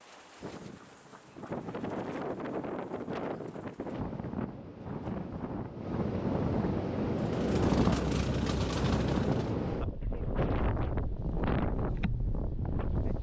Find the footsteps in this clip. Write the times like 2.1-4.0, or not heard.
not heard.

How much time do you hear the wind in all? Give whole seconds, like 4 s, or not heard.
13 s.